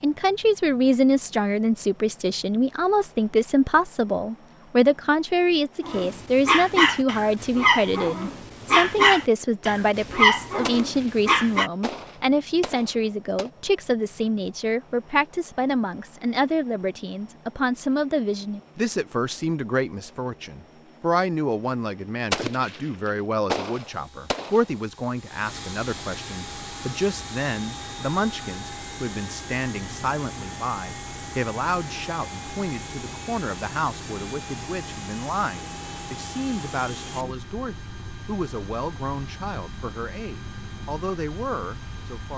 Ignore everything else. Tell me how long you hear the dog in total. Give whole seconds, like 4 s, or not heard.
6 s.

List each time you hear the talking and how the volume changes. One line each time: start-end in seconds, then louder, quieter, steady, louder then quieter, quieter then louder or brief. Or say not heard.
0.0-42.3 quieter.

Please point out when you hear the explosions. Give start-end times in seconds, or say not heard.
10.6-13.5, 22.3-24.7.